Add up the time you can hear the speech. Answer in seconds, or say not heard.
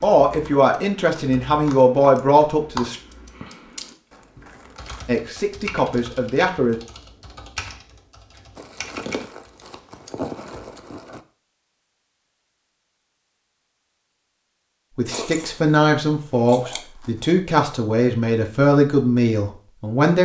10 s.